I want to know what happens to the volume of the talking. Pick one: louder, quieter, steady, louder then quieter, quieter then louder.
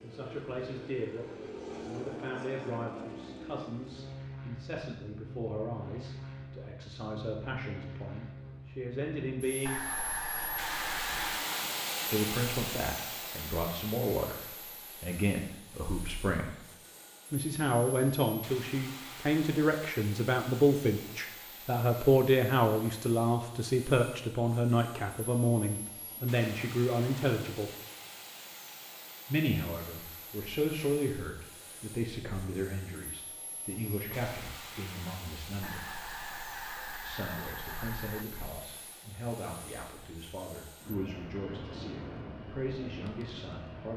louder then quieter.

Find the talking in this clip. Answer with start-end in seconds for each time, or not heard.
0.0-9.8, 12.1-16.6, 17.3-27.7, 29.2-35.9, 37.0-43.9.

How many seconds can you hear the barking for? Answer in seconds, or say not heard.
not heard.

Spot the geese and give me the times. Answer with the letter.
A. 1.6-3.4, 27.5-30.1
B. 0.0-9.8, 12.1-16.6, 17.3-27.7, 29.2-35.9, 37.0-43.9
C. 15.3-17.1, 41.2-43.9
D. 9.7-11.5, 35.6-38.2
D.